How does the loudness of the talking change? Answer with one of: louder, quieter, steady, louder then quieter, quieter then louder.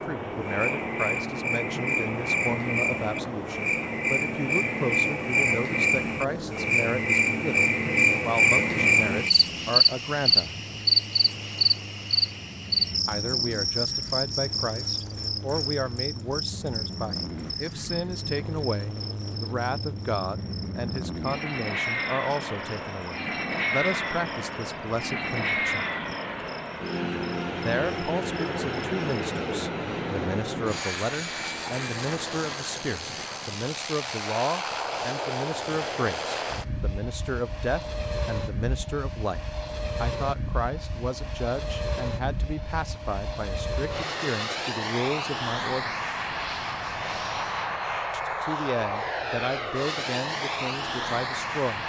steady.